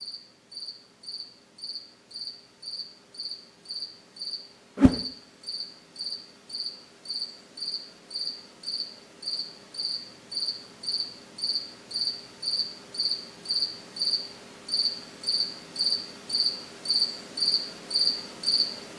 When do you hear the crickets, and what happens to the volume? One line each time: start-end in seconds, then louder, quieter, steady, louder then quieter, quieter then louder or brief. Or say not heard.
0.0-18.9 louder.